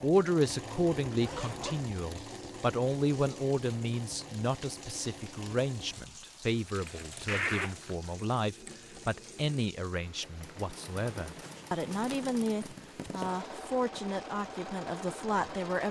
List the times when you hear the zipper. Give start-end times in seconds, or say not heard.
1.1-1.9, 6.5-8.2, 11.4-13.4.